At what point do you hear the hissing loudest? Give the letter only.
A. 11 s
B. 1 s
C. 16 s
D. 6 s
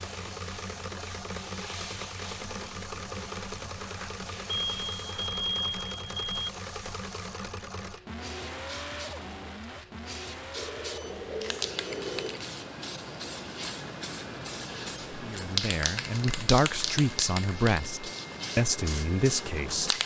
C.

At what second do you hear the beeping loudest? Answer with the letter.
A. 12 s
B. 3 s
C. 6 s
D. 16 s
C.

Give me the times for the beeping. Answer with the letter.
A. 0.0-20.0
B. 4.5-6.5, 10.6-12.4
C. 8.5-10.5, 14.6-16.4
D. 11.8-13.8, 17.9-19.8
B.